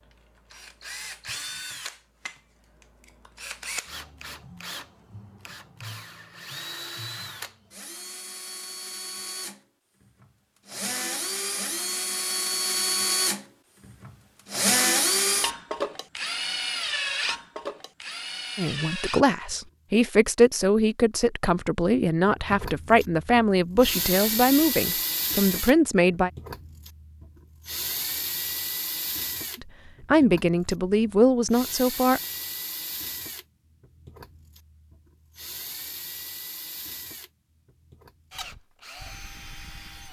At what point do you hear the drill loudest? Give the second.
15 s.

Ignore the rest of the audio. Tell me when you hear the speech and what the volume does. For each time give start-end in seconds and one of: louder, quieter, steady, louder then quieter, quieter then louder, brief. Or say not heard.
18.6-26.3 steady
29.6-32.2 brief.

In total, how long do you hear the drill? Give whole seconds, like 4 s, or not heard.
38 s.